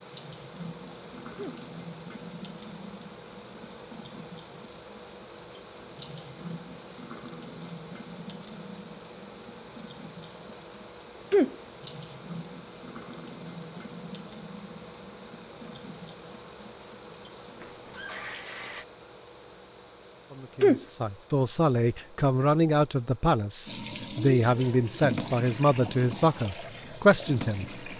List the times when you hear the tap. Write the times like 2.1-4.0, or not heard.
0.0-18.9, 23.6-27.9.